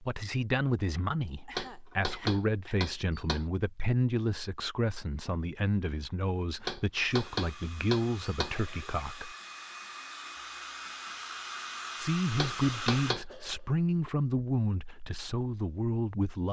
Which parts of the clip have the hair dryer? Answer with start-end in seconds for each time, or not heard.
7.0-13.2.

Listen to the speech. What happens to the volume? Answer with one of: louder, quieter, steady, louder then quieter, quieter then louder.
steady.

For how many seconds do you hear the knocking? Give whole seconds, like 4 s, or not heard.
5 s.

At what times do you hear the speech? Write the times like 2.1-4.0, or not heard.
0.0-9.3, 11.9-16.4.